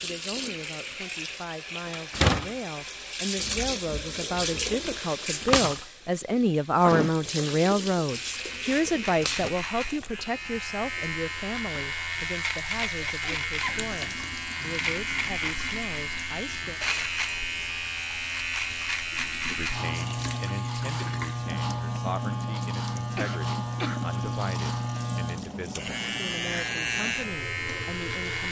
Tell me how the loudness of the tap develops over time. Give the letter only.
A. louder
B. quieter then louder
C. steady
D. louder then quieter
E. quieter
E.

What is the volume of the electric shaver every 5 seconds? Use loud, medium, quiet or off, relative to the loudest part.
off, medium, loud, loud, loud, loud.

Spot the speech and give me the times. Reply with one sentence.
The speech can be heard from 0.0 to 16.8 s and from 19.4 to 28.4 s.